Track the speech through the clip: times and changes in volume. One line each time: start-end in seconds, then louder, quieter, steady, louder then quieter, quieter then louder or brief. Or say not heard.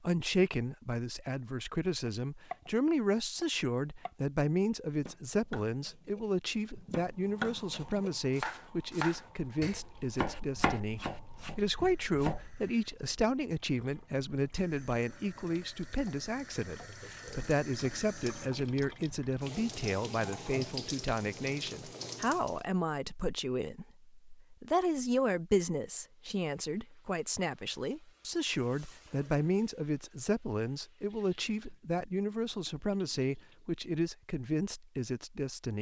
0.0-35.7 steady.